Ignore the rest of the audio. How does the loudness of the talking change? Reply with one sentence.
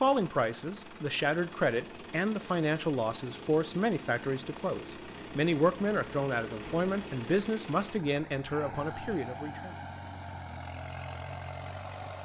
The loudness of the talking stays about the same.